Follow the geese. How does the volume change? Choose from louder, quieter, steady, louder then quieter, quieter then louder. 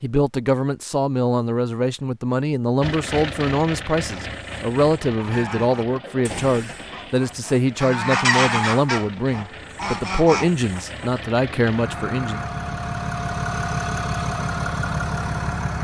louder then quieter.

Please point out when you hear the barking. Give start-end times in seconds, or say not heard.
not heard.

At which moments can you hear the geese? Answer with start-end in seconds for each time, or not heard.
4.3-11.1.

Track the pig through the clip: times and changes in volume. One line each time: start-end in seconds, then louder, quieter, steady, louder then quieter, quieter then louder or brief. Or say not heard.
not heard.